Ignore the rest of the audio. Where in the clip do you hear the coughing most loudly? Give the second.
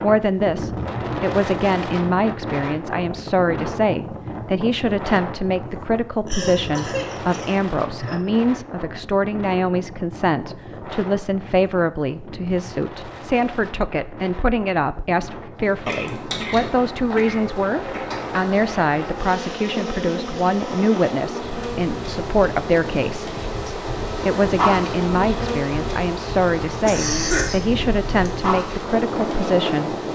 27 s.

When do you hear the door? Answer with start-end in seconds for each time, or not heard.
not heard.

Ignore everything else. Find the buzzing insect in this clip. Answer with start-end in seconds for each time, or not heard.
15.6-30.1.